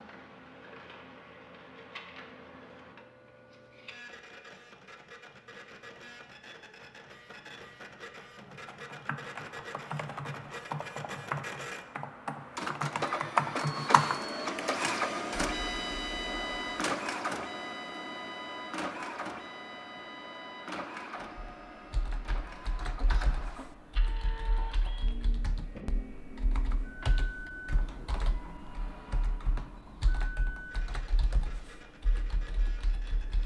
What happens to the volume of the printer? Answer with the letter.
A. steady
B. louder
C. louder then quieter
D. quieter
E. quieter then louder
C.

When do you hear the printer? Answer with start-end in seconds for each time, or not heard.
0.0-33.4.